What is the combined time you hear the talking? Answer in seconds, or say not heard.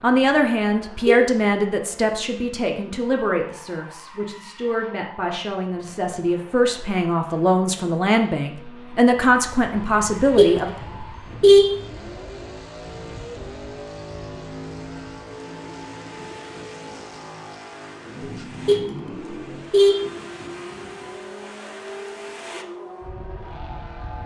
11 s.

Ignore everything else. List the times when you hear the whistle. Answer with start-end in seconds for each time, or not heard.
not heard.